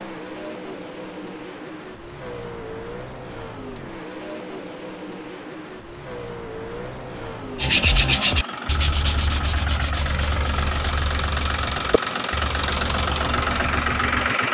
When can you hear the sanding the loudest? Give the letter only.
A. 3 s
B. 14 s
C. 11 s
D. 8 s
D.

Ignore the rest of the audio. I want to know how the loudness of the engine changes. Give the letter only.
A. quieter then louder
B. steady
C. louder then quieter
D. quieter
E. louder
E.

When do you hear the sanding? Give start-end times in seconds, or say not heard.
7.5-14.3.